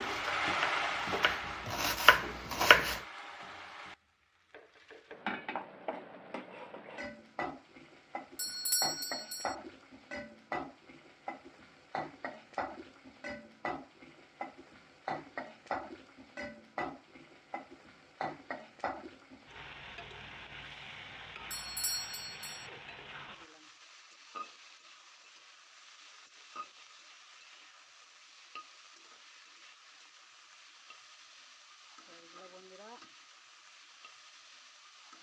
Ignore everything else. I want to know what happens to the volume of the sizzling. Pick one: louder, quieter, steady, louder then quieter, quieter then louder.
quieter.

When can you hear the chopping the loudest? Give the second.
3 s.